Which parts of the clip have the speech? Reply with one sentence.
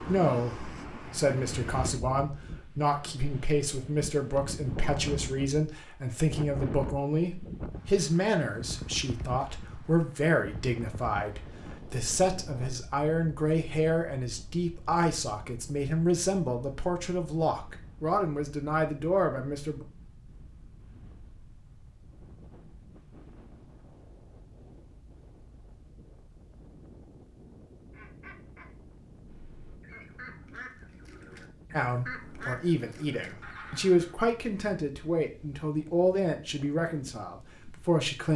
You can hear the speech from 0.0 to 19.9 s and from 31.7 to 38.3 s.